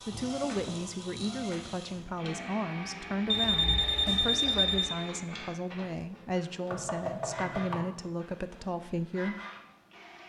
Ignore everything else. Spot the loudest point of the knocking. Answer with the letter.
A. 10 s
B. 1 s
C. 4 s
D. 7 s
D.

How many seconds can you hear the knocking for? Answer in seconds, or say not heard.
2 s.